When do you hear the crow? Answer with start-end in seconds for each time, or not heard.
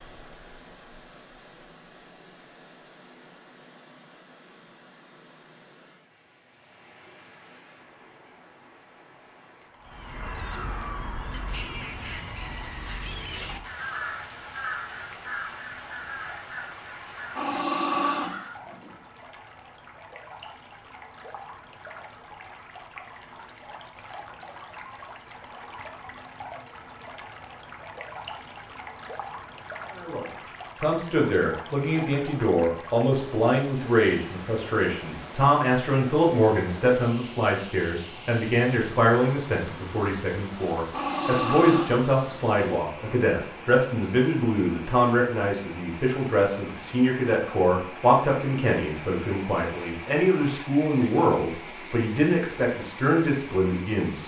9.8-18.8.